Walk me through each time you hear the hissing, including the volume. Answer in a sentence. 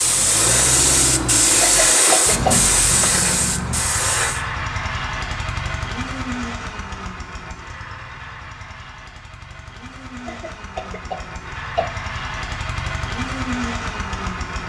The hissing can be heard from 0.0 to 4.5 s, getting quieter.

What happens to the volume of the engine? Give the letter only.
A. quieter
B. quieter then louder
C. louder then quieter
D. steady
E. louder
B.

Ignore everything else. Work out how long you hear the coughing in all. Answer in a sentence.
You can hear the coughing for 3 seconds altogether.